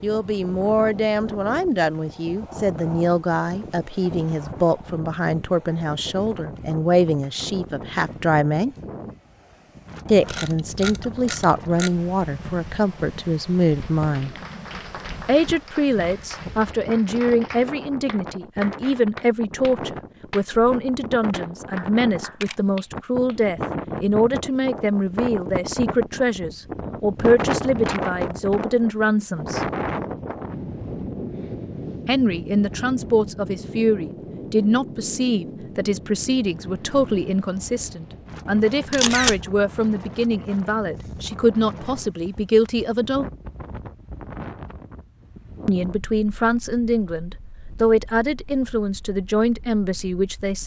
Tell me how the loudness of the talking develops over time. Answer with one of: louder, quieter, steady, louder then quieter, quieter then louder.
steady.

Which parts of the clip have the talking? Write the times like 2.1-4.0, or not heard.
0.0-8.8, 10.1-14.4, 15.2-29.6, 32.0-43.2, 45.6-50.6.